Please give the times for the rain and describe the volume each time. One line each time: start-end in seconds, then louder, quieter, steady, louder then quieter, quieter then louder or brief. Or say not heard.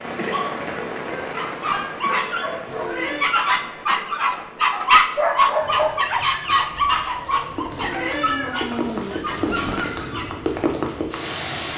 0.0-11.7 quieter then louder.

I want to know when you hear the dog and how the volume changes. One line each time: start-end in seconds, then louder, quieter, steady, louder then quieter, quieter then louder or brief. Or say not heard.
0.3-10.2 louder then quieter.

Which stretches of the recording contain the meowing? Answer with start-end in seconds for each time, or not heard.
2.6-3.3, 7.7-9.8.